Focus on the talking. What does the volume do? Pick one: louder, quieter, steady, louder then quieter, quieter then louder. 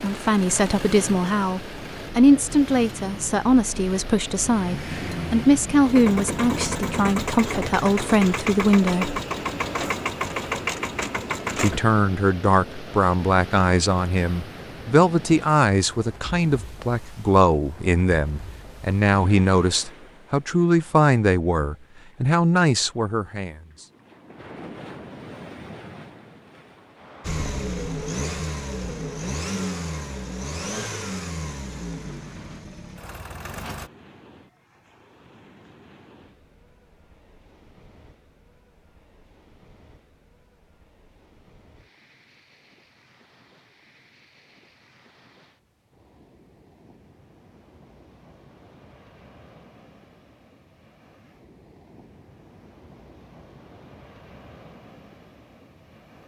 steady.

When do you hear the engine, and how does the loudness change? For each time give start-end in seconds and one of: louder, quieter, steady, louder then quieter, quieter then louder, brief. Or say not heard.
0.0-11.8 louder
27.2-33.9 quieter.